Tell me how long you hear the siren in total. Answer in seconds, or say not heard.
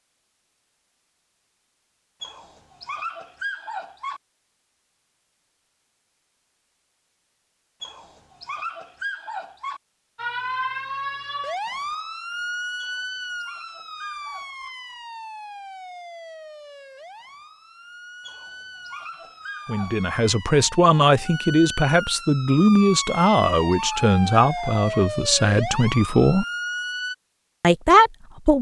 17 s.